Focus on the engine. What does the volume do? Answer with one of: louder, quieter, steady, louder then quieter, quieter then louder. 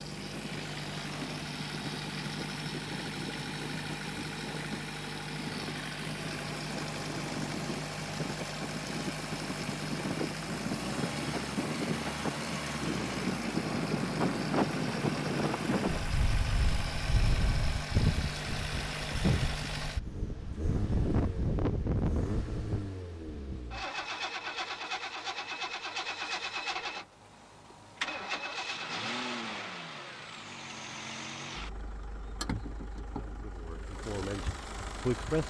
steady.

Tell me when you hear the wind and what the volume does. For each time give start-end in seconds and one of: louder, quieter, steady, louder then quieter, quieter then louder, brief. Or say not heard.
0.0-23.8 louder.